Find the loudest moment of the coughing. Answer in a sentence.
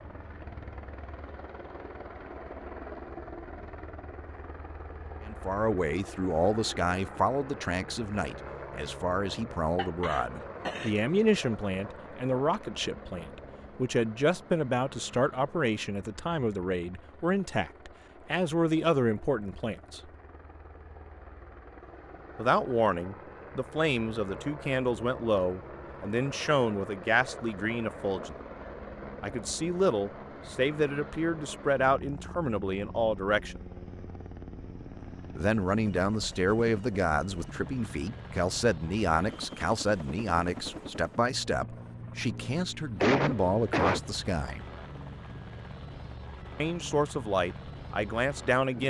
The loudest moment of the coughing is at 43 seconds.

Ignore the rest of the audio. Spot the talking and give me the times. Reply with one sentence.
You can hear the talking from 5.2 to 20.0 s, from 22.4 to 28.4 s, from 29.2 to 33.6 s, from 35.4 to 44.6 s and from 46.6 to 48.8 s.